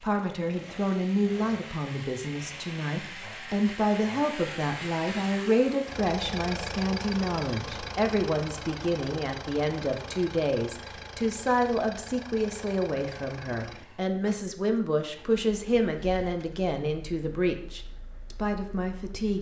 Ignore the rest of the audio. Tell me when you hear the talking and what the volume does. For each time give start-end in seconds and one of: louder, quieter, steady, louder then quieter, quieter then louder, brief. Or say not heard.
0.0-19.3 steady.